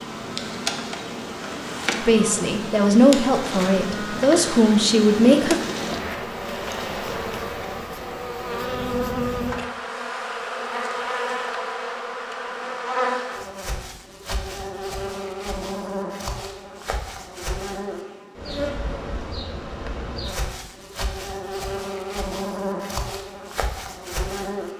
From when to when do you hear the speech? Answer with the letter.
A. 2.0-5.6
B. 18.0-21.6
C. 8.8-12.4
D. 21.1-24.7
A.